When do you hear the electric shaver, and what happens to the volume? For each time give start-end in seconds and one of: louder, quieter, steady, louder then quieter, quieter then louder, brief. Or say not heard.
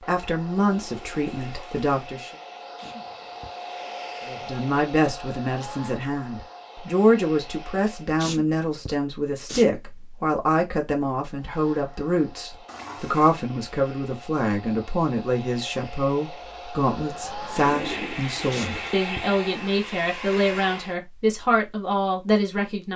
not heard.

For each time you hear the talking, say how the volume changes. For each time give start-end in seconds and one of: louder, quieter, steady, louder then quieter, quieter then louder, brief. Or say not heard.
0.1-2.3 brief
4.2-22.9 steady.